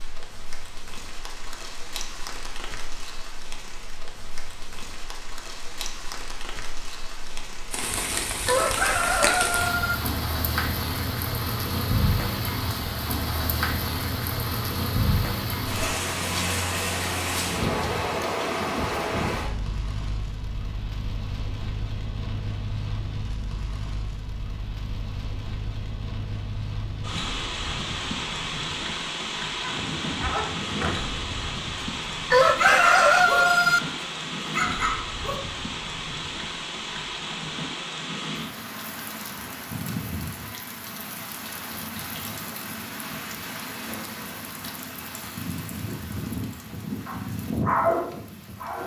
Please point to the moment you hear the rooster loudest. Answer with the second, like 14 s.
33 s.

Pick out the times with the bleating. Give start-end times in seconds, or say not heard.
not heard.